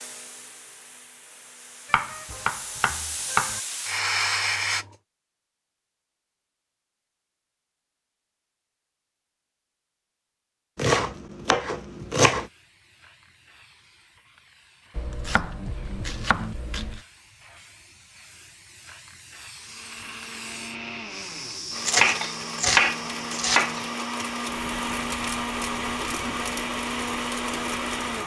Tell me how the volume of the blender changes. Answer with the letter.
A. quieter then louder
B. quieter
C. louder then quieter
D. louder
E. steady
D.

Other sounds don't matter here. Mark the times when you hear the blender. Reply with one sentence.
You can hear the blender from 19.6 to 28.2 s.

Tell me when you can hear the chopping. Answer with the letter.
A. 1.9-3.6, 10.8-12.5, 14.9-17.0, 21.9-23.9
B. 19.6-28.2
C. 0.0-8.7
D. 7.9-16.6
A.